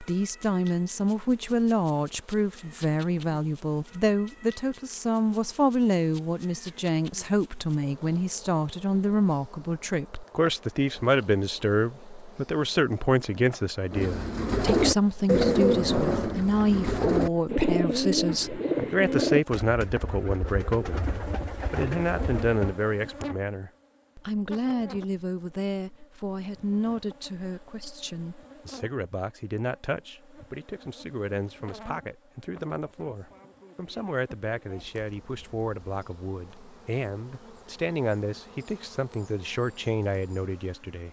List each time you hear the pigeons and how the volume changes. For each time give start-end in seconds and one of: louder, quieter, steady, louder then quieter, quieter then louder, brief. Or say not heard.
13.9-22.8 quieter.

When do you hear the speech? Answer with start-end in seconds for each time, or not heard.
0.0-41.0.